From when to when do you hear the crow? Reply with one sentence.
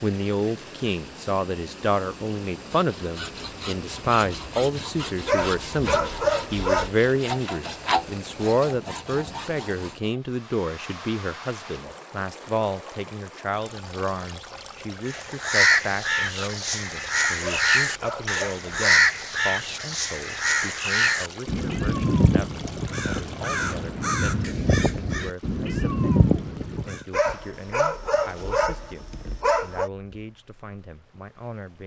You can hear the crow from 15.1 to 27.1 s.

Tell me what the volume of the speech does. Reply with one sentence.
The volume of the speech goes down.